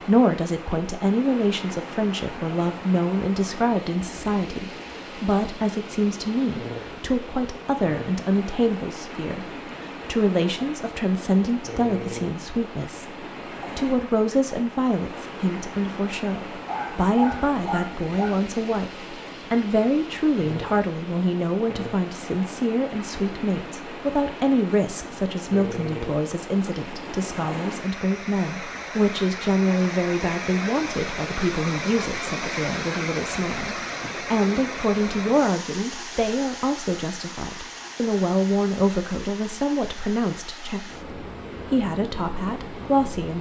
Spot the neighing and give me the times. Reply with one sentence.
The neighing can't be heard in this clip.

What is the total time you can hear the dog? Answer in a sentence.
The dog can be heard for 2 seconds in total.